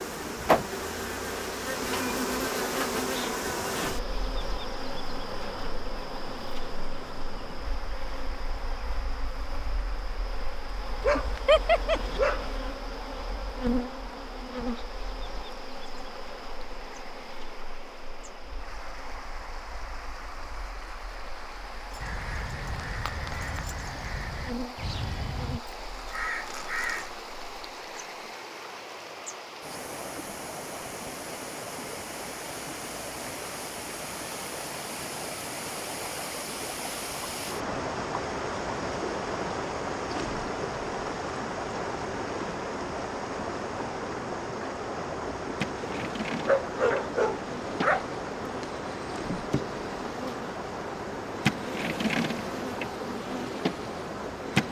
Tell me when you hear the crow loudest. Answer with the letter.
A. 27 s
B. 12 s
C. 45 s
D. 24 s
A.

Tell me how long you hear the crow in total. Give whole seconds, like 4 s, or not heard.
5 s.